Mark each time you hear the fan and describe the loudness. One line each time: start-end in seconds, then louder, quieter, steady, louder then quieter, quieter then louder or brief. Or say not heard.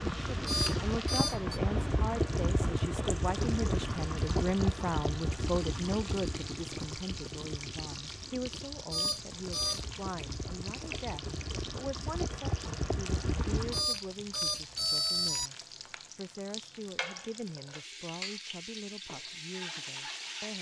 0.0-13.9 quieter then louder.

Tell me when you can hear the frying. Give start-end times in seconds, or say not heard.
0.0-20.5.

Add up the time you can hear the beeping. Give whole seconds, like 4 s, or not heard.
4 s.